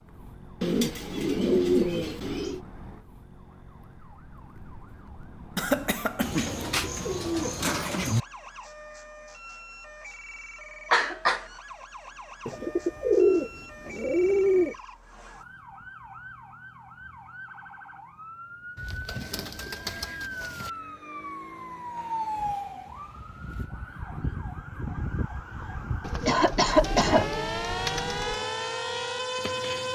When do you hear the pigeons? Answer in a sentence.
You can hear the pigeons from 0.6 to 2.6 s, from 6.2 to 8.2 s, from 12.4 to 14.8 s, from 18.8 to 20.7 s and from 26.0 to 28.4 s.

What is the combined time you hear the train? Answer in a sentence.
The train can't be heard in this clip.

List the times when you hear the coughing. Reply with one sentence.
You can hear the coughing from 5.5 to 6.7 s, from 10.9 to 11.4 s and from 26.2 to 27.2 s.